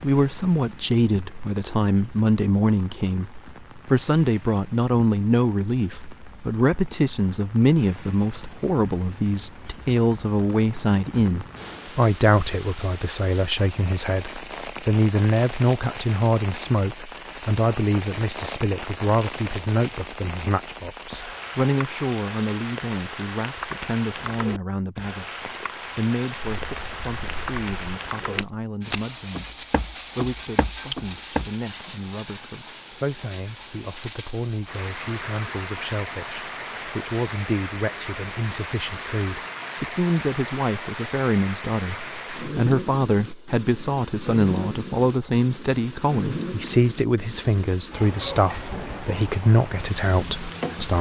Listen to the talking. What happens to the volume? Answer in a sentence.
The loudness of the talking goes down, then up.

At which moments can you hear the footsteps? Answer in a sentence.
You can hear the footsteps from 26.4 to 31.5 s.